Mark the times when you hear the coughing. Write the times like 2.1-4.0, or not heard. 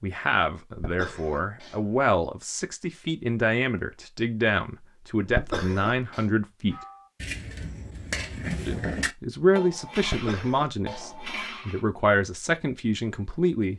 0.8-2.0, 5.2-6.2, 10.0-11.3.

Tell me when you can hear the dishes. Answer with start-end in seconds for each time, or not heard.
6.7-11.8.